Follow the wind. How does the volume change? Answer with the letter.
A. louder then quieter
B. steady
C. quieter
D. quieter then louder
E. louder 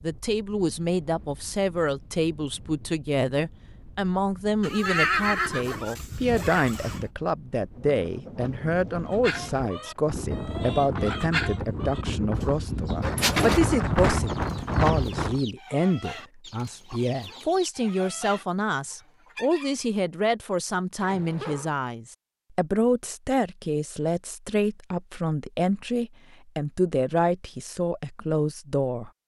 E.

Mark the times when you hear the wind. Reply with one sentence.
The wind can be heard from 0.0 to 15.4 s.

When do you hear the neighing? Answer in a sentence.
The neighing can be heard from 4.6 to 7.0 s, from 13.2 to 13.8 s and from 21.0 to 21.7 s.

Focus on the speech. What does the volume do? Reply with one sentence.
The volume of the speech stays about the same.